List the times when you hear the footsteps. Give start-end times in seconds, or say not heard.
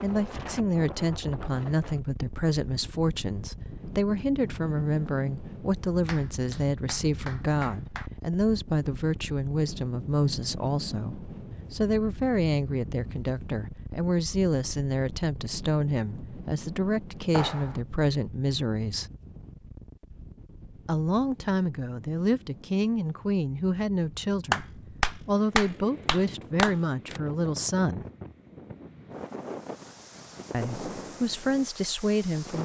not heard.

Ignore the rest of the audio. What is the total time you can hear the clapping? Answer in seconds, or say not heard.
5 s.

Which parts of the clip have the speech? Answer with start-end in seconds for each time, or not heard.
0.0-19.1, 20.9-28.1, 30.5-32.6.